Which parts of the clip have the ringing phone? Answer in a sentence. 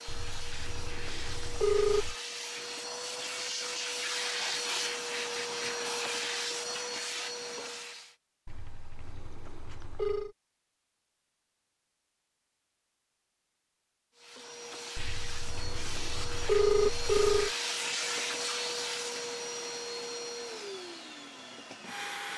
The ringing phone can be heard from 0.1 to 2.1 s, from 8.4 to 10.3 s and from 14.9 to 17.5 s.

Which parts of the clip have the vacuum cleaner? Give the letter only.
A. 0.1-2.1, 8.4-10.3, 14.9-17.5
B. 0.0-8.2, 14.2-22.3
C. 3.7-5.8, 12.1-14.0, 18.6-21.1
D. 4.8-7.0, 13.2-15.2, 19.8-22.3
B.